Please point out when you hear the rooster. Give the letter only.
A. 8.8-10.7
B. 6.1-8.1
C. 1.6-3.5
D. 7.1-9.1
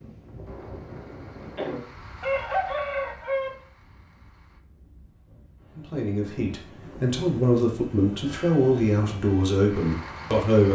C.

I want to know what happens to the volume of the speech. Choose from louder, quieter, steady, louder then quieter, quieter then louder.
louder.